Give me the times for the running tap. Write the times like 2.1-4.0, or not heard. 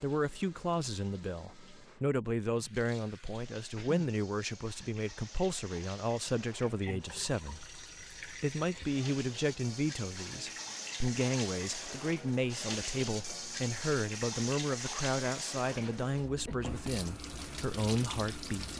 0.0-18.7.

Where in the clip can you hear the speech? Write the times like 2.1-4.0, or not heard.
0.0-18.7.